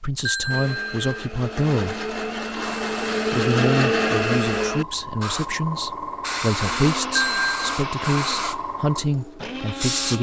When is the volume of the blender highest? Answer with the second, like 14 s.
4 s.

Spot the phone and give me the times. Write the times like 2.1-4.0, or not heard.
0.2-1.1, 7.2-7.8.